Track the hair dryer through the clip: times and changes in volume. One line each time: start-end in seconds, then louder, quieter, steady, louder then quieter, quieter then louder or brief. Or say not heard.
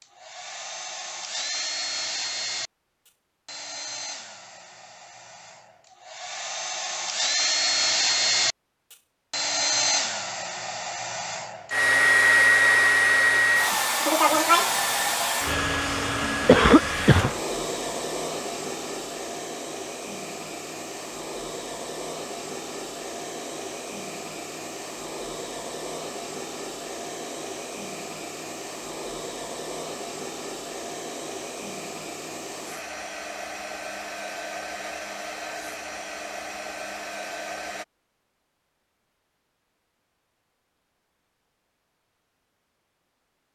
0.0-37.9 louder then quieter.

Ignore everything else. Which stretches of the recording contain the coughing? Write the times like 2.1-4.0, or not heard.
16.4-17.4.